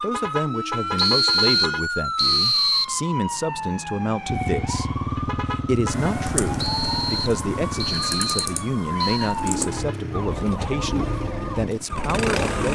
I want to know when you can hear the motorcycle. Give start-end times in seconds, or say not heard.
4.2-12.7.